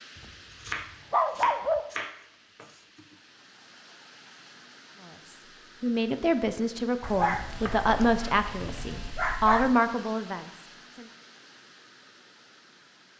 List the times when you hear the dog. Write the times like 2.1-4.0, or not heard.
0.1-1.8, 7.0-9.8.